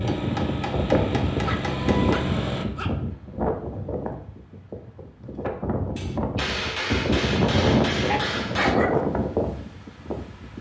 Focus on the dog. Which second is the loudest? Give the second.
9 s.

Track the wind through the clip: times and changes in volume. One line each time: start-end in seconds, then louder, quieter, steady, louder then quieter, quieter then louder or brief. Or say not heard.
0.0-10.5 quieter then louder.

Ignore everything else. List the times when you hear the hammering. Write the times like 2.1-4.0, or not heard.
0.1-2.2, 6.0-8.8.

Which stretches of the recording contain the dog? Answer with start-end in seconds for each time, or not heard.
1.4-3.0, 8.0-9.0.